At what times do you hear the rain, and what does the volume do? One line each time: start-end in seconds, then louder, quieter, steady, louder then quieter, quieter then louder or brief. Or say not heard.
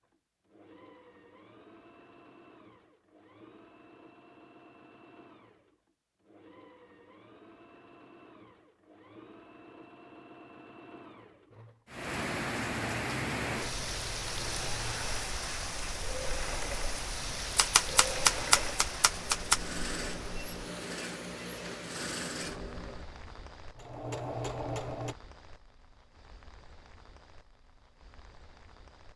11.8-29.1 quieter.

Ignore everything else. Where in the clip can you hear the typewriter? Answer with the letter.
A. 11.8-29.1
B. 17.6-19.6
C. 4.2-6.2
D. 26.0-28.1
B.